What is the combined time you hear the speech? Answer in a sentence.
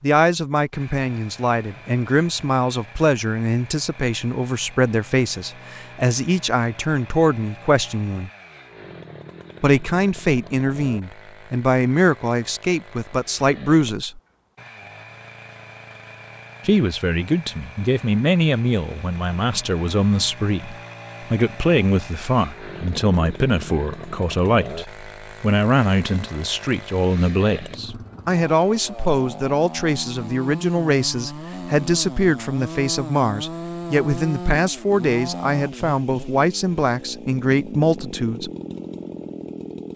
You can hear the speech for 35 seconds altogether.